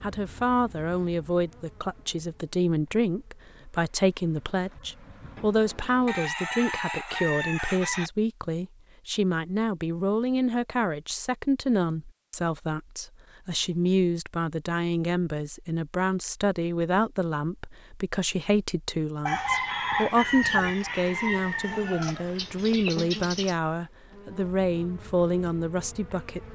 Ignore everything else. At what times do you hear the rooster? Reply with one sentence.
The rooster can be heard from 6.0 to 8.1 s and from 19.2 to 23.6 s.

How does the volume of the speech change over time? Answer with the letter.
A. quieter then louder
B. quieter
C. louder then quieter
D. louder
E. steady
E.